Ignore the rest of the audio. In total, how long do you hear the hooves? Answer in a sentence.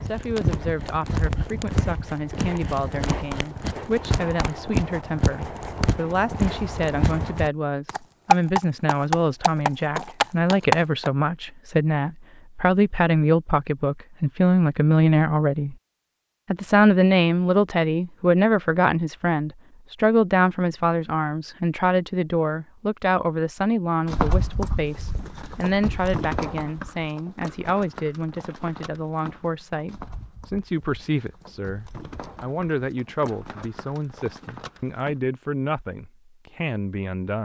The hooves can be heard for 22 seconds in total.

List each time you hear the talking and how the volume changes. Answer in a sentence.
You can hear the talking from 0.0 to 15.8 s, getting louder; and from 16.5 to 37.4 s, getting quieter.